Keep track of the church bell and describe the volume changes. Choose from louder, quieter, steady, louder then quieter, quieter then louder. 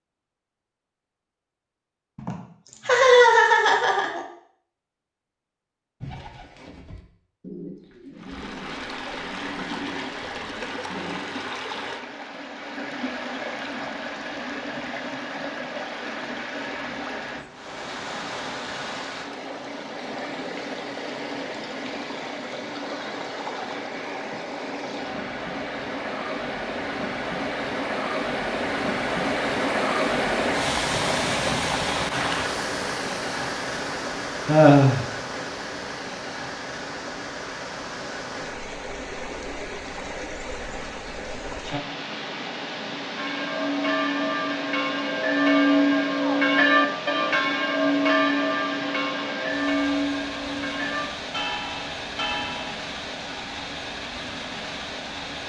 louder then quieter.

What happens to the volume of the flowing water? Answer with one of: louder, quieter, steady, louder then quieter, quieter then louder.
louder then quieter.